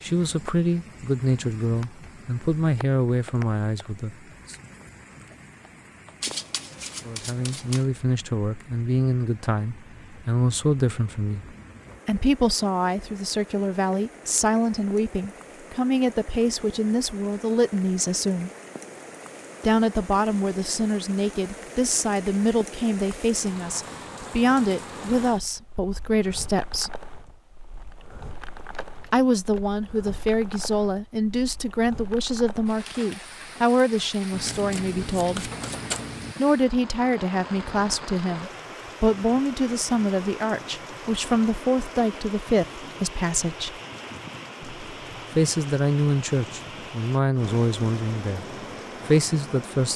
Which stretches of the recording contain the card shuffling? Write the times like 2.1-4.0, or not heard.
6.2-7.9, 28.7-29.8, 34.3-36.4.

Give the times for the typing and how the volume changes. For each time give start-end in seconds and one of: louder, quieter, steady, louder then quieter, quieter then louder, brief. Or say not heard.
not heard.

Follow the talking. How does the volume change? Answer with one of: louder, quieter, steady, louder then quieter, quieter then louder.
steady.